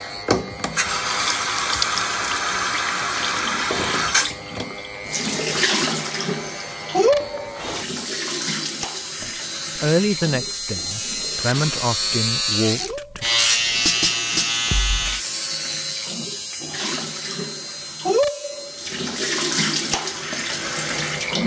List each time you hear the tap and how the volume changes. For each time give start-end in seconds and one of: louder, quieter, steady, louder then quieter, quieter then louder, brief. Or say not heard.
0.0-21.4 quieter then louder.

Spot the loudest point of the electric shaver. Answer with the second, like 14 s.
14 s.